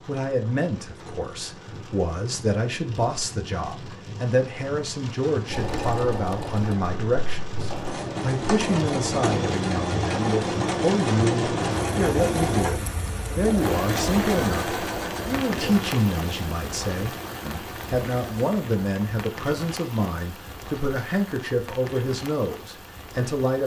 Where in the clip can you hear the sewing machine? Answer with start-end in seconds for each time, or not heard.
5.5-18.6.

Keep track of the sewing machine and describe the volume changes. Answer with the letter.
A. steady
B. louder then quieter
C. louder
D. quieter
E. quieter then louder
B.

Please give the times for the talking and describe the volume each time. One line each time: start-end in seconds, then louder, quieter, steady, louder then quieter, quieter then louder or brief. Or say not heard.
0.1-23.6 steady.